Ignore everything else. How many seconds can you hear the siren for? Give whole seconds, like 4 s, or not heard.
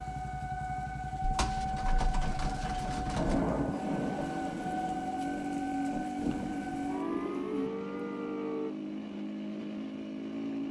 9 s.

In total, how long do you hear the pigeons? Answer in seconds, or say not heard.
4 s.